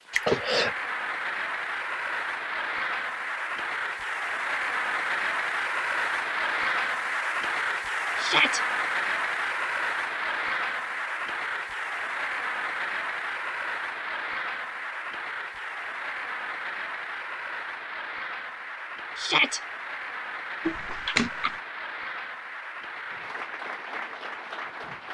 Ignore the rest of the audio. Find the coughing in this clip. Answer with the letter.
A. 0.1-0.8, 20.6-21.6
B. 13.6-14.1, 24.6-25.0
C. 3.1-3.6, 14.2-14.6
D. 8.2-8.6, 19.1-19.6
A.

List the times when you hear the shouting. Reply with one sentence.
The shouting can be heard from 8.2 to 8.6 s and from 19.1 to 19.6 s.